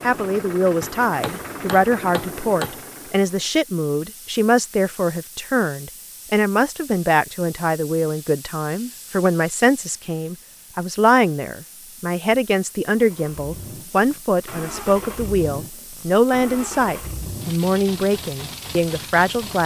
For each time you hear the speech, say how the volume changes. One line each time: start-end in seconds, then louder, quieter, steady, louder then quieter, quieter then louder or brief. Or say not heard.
0.0-19.6 steady.